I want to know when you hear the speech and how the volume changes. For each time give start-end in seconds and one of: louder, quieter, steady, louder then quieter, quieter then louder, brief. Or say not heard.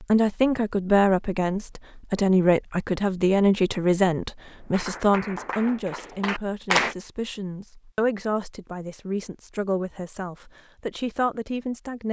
0.0-12.0 quieter.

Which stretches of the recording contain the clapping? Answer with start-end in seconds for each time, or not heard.
4.5-7.0.